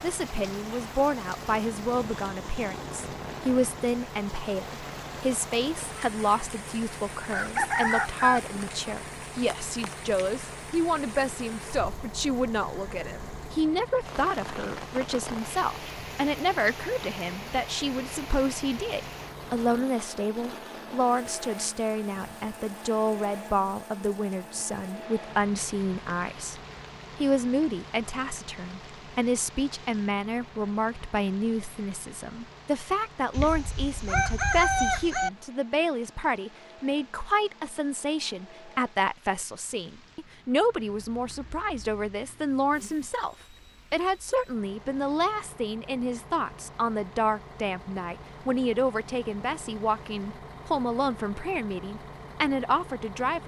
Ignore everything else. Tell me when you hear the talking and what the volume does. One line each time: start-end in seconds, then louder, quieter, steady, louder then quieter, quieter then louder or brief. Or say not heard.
0.0-26.6 steady
27.2-53.4 steady.